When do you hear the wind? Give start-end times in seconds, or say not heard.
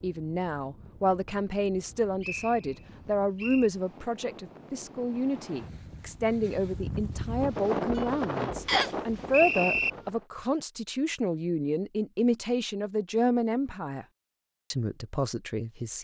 0.0-10.3.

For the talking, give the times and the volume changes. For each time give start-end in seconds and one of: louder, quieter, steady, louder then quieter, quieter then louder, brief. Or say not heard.
0.0-14.1 steady
14.7-16.0 brief.